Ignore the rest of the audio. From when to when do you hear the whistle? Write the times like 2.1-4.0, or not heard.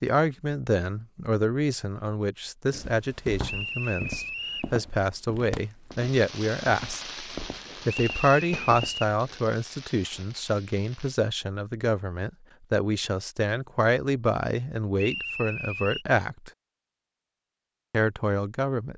3.5-4.8, 7.9-9.2, 14.9-16.1.